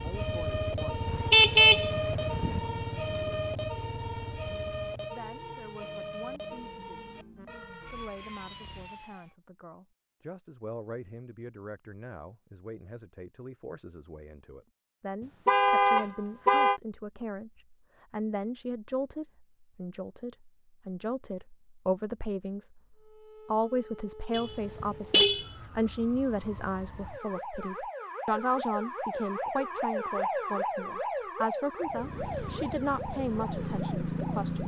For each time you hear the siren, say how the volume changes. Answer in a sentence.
The siren can be heard from 0.0 to 9.3 s, getting quieter; and from 22.9 to 34.6 s, getting louder then quieter.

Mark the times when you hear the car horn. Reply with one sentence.
You can hear the car horn from 1.1 to 2.6 s, from 15.4 to 16.8 s and from 24.3 to 25.4 s.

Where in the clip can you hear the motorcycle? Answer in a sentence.
The motorcycle can be heard from 0.0 to 4.9 s and from 31.8 to 34.6 s.